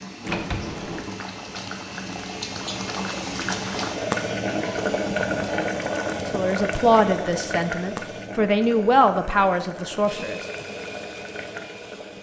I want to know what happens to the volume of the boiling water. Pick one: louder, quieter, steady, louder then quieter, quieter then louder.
louder then quieter.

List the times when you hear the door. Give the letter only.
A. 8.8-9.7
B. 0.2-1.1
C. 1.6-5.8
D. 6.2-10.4
B.